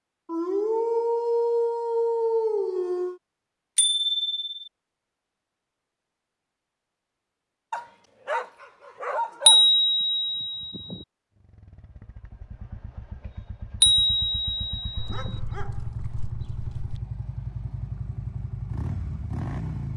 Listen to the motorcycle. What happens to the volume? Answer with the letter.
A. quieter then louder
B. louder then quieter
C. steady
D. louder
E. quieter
D.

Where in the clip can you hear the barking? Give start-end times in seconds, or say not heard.
0.2-3.2, 7.7-9.7, 14.9-17.0.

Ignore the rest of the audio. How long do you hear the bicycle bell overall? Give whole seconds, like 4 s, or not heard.
4 s.